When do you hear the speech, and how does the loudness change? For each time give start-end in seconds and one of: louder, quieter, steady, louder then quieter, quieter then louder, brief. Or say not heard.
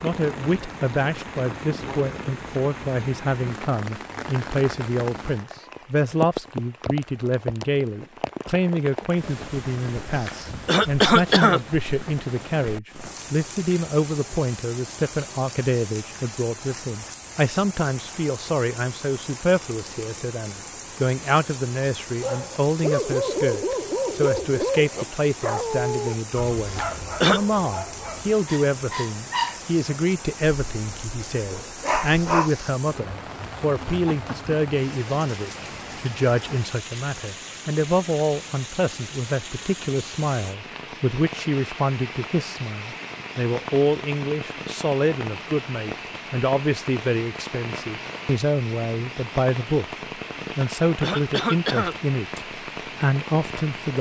0.0-53.9 steady.